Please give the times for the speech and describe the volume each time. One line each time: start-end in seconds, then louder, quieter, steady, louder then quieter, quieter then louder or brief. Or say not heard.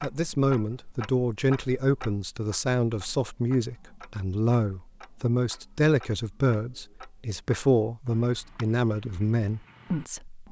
0.0-10.4 steady.